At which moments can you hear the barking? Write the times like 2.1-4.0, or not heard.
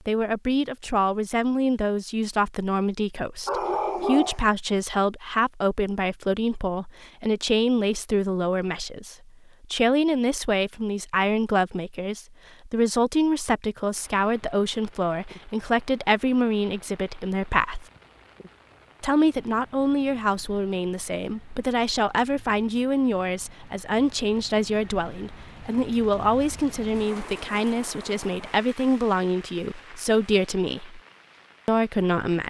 3.5-4.5.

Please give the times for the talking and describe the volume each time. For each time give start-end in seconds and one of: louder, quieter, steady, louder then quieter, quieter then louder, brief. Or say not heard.
0.1-17.9 steady
19.0-31.0 steady
31.6-32.4 brief.